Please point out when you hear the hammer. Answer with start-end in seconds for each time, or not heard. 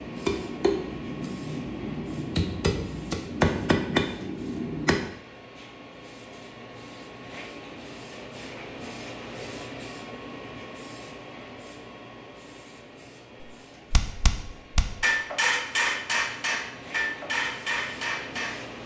0.0-5.1, 13.4-18.6.